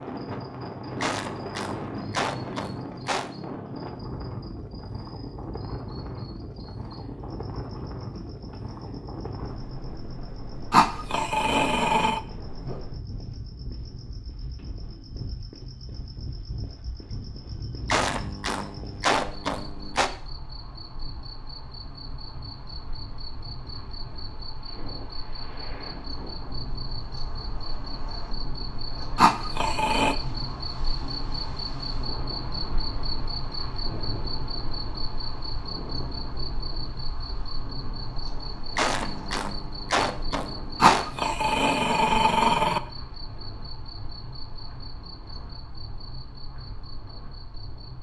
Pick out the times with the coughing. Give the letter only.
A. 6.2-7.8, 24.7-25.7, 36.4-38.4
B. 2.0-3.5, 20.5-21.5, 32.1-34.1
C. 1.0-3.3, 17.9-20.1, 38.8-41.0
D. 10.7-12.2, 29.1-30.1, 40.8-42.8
C.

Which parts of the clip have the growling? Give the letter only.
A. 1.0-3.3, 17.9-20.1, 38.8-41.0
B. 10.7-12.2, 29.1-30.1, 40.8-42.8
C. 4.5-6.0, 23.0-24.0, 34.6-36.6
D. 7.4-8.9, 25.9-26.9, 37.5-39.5
B.